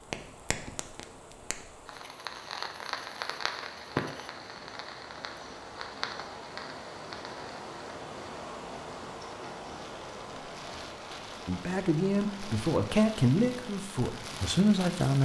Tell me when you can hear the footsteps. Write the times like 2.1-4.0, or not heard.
not heard.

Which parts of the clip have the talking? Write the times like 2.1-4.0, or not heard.
11.4-15.2.